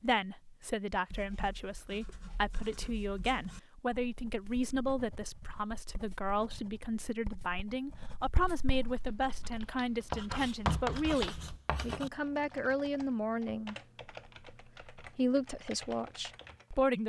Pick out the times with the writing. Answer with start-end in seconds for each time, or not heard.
1.1-12.1.